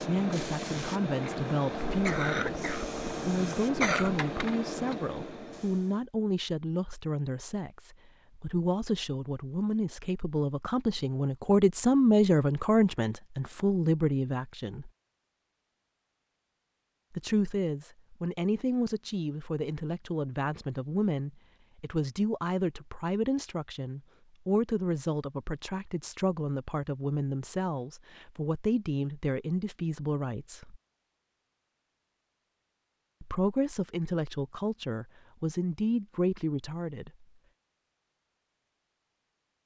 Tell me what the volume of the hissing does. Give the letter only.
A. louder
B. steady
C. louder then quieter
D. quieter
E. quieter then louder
B.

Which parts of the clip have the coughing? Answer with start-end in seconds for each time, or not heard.
1.9-4.3.